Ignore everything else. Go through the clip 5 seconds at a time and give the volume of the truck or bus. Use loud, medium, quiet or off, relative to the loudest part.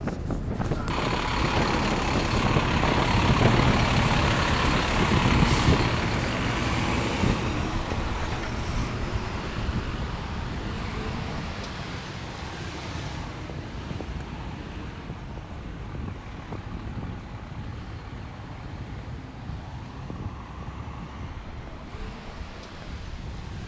loud, loud, medium, quiet, quiet.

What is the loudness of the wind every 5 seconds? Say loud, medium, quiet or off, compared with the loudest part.
loud, loud, quiet, quiet, quiet.